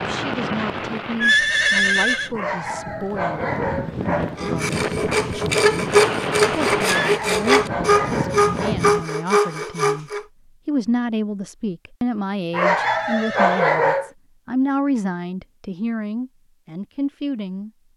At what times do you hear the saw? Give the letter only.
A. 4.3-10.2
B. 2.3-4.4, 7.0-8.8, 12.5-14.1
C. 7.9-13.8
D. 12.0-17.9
A.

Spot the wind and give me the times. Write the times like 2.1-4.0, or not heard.
0.0-9.1.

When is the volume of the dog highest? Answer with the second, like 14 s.
14 s.